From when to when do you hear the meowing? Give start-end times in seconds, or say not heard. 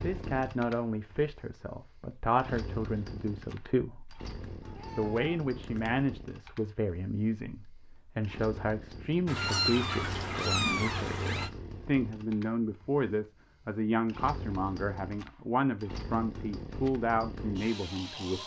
4.7-5.9, 9.2-11.5.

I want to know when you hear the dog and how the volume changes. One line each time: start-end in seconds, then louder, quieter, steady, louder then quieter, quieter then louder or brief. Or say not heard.
not heard.